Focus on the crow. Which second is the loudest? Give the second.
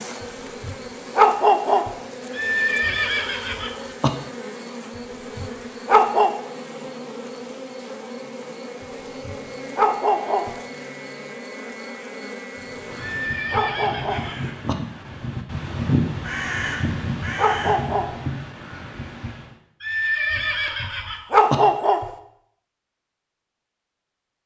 16 s.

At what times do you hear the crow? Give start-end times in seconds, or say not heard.
12.6-19.6.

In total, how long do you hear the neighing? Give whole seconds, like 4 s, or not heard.
5 s.